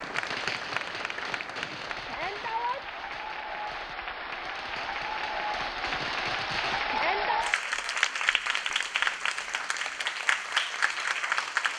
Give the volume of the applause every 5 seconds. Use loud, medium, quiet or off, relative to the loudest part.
medium, loud, loud.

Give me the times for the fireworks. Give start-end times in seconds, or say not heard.
0.0-7.2.